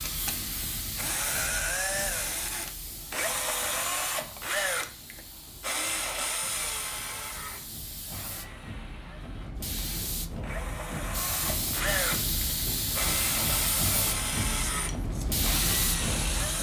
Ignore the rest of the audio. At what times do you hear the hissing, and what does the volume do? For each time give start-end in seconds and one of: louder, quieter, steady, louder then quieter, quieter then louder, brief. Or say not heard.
0.0-16.5 quieter then louder.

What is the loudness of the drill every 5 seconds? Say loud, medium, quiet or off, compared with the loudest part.
loud, medium, loud, loud.